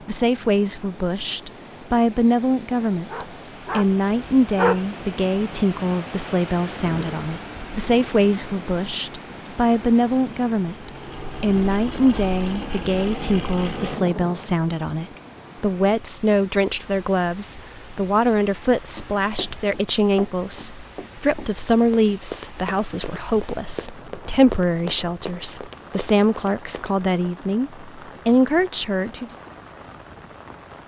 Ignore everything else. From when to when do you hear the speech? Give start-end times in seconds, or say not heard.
0.1-3.1, 3.8-29.3.